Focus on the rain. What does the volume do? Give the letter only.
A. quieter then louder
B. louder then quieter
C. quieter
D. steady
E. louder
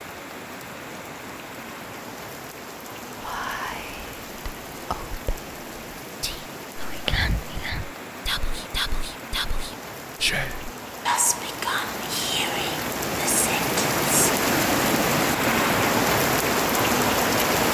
E.